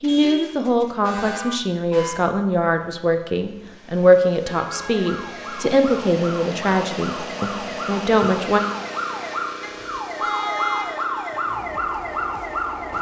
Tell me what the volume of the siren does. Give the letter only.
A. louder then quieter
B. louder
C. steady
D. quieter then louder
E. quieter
B.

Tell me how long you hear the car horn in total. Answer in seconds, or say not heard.
5 s.